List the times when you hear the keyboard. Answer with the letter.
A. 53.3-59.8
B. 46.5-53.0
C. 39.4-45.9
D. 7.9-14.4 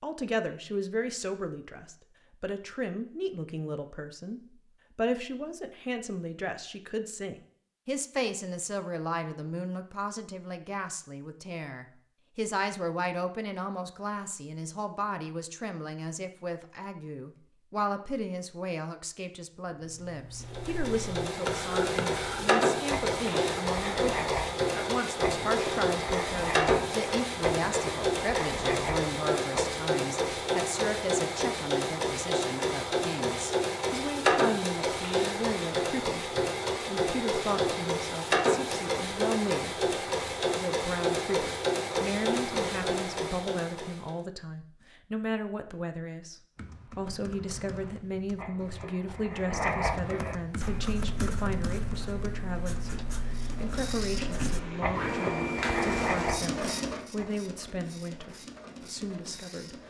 B.